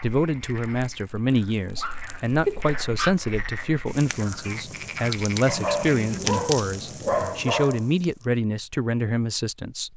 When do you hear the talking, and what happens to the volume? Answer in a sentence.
You can hear the talking from 0.0 to 9.9 s, at a steady volume.